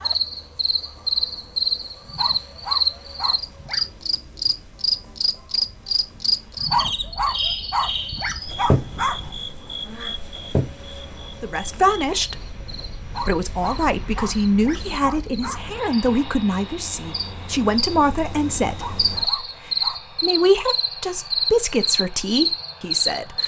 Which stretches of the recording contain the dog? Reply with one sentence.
You can hear the dog from 2.0 to 3.9 s, from 6.5 to 9.4 s, from 13.0 to 15.8 s and from 18.6 to 20.2 s.